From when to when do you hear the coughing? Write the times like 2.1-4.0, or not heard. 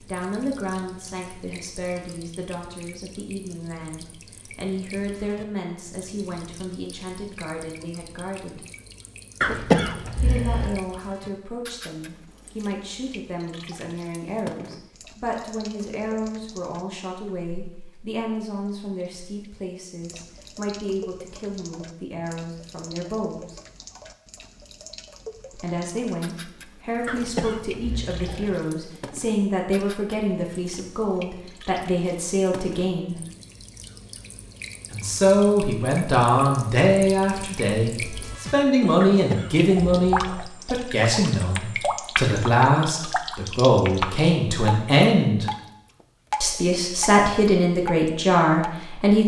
9.4-10.8, 27.1-28.6, 39.0-40.5.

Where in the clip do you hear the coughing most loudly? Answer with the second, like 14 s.
10 s.